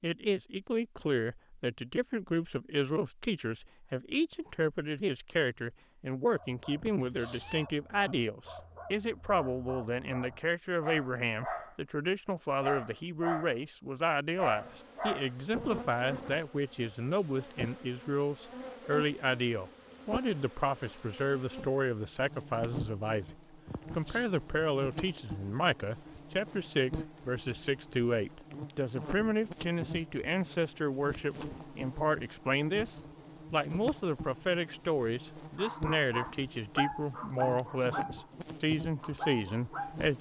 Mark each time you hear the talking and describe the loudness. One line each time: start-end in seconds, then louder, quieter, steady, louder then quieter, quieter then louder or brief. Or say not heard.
0.0-23.2 steady
23.9-40.1 steady.